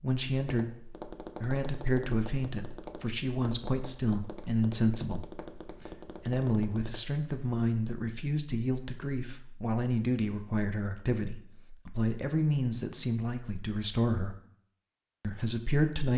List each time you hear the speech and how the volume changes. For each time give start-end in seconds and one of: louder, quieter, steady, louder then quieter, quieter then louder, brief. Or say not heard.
0.0-14.3 steady
15.2-16.1 brief.